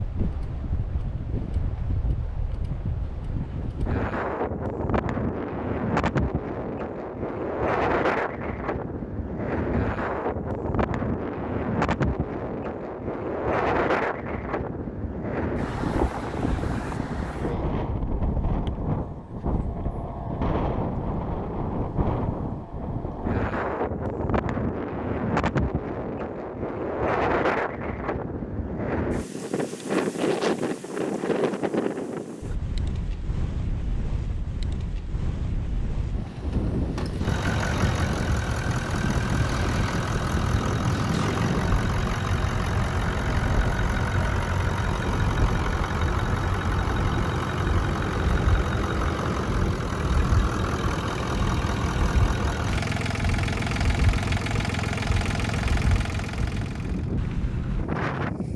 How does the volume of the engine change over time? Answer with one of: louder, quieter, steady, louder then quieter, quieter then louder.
steady.